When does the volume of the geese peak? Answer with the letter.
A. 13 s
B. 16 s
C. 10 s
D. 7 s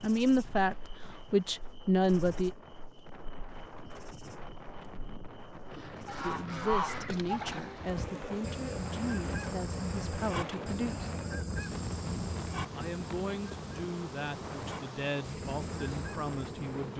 D.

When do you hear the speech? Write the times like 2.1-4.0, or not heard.
0.0-2.5, 6.2-11.1, 12.8-16.9.